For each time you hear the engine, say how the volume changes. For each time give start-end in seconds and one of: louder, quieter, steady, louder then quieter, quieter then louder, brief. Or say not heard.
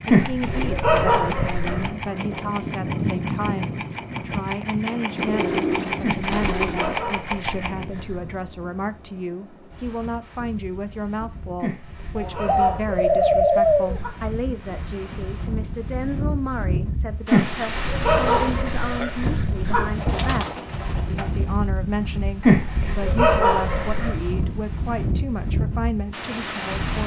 0.0-7.8 steady.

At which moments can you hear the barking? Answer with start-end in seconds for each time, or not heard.
0.1-1.9, 6.0-8.4, 11.6-14.1, 17.2-19.9, 22.4-24.1.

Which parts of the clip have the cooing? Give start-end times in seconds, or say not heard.
5.2-7.0, 12.2-14.0, 19.9-21.4.